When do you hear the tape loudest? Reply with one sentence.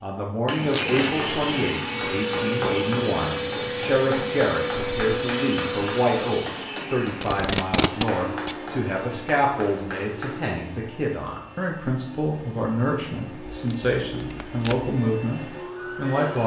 The loudest moment of the tape is at 8 seconds.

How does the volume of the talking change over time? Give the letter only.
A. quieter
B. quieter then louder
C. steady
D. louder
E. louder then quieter
C.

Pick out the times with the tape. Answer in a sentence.
The tape can be heard from 0.7 to 1.1 s, from 7.2 to 8.6 s and from 13.4 to 15.0 s.